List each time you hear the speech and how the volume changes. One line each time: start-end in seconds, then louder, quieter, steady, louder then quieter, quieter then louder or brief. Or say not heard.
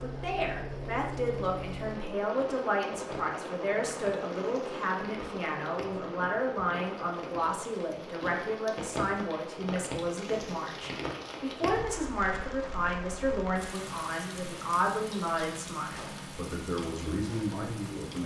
0.0-18.2 steady.